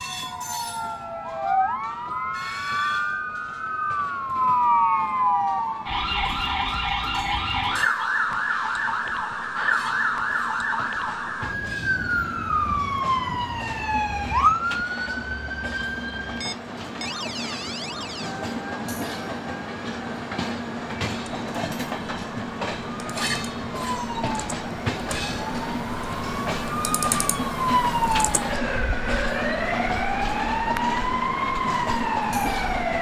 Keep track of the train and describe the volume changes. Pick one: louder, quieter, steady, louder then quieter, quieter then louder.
louder.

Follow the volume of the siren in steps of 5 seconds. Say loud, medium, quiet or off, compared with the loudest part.
loud, loud, loud, medium, medium, loud, loud.